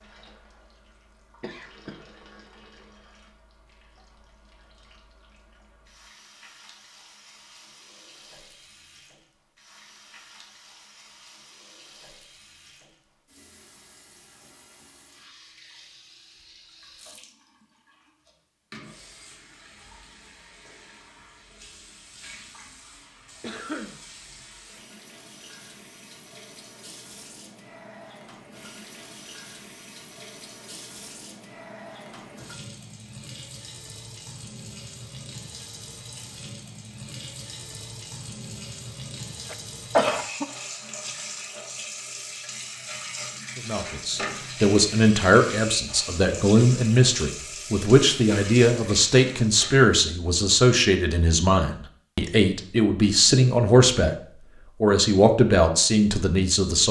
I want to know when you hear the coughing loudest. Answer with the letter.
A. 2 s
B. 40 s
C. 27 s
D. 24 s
B.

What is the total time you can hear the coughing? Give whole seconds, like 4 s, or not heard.
2 s.